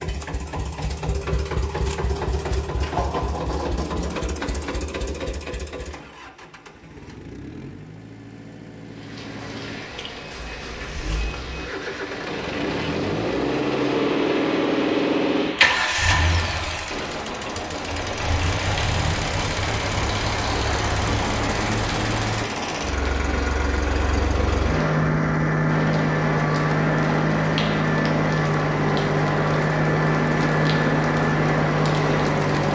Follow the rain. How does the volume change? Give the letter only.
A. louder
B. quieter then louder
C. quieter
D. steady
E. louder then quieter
A.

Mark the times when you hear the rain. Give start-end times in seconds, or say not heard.
8.8-32.7.